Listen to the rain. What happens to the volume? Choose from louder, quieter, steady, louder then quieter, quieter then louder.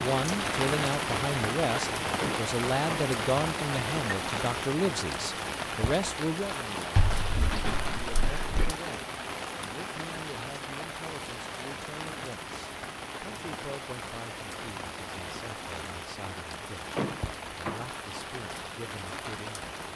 quieter.